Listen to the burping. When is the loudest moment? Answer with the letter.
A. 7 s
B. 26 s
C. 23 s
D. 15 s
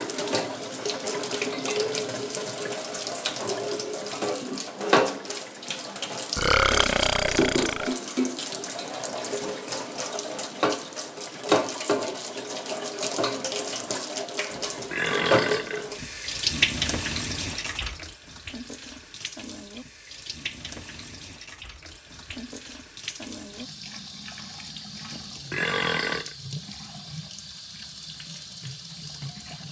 A.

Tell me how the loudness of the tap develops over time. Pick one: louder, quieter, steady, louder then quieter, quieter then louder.
quieter.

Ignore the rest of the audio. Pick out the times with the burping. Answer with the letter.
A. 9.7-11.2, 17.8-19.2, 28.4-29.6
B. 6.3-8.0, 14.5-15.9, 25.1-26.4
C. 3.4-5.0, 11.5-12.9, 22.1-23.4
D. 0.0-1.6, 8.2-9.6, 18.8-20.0
B.